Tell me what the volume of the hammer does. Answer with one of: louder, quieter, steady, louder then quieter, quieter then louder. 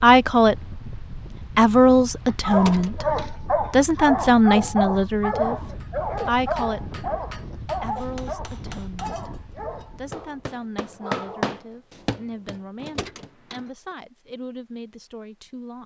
louder then quieter.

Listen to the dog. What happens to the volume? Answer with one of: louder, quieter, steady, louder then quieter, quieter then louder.
quieter.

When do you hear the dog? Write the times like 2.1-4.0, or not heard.
2.2-11.4.